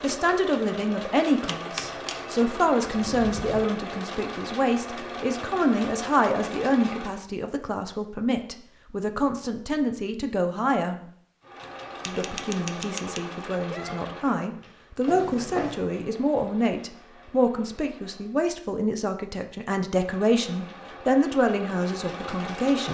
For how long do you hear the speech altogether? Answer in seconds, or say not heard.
22 s.